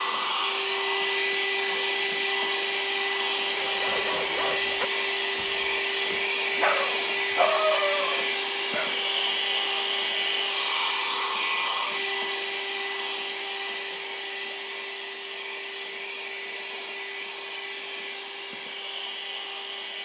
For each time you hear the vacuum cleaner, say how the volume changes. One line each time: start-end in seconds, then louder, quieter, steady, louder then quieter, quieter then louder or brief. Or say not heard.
0.0-19.9 quieter.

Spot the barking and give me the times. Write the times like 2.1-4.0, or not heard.
3.4-9.0.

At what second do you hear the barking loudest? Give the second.
8 s.